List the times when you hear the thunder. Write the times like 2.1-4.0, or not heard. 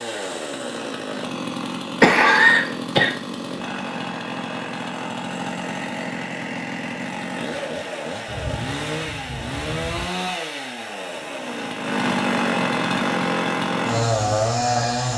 8.2-10.1.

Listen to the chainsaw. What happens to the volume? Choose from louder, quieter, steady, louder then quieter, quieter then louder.
louder.